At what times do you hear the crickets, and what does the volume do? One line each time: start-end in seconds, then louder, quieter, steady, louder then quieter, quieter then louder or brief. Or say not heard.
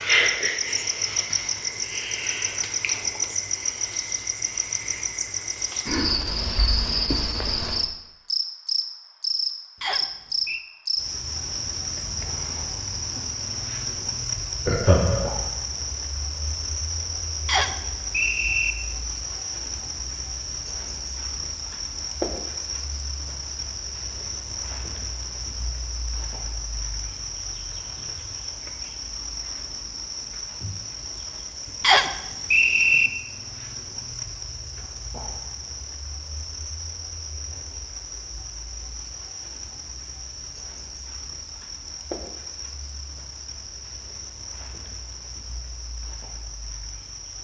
0.0-47.4 quieter.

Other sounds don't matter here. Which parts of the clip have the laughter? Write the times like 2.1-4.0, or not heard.
14.7-15.3.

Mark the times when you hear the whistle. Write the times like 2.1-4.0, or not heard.
9.8-10.7, 17.4-18.8, 31.8-33.1.